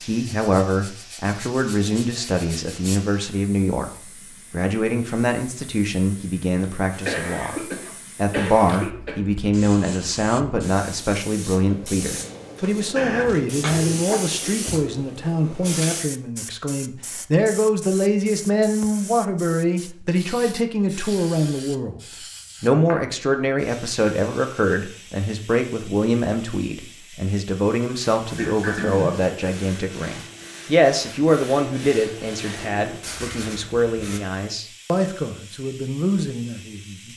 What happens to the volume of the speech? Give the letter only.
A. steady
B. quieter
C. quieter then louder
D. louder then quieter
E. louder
A.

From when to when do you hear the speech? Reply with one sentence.
The speech can be heard from 0.0 to 7.5 s, from 8.2 to 22.0 s and from 22.6 to 37.1 s.